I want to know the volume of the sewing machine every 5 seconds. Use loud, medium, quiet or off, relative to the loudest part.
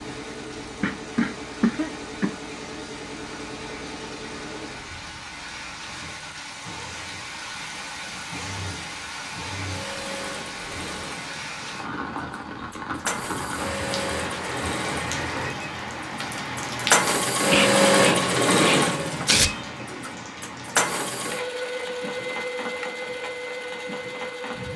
quiet, quiet, medium, loud, medium.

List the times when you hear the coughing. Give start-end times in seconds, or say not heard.
0.8-2.3, 17.5-18.9.